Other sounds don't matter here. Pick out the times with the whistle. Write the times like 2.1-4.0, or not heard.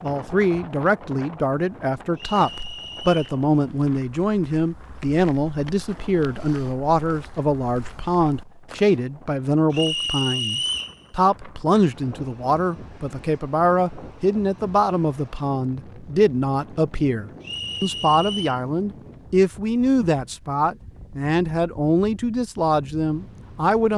2.1-3.4, 9.7-10.9, 17.4-18.6.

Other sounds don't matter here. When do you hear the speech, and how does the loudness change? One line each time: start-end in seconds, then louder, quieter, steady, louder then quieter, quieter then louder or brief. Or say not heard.
0.0-23.9 steady.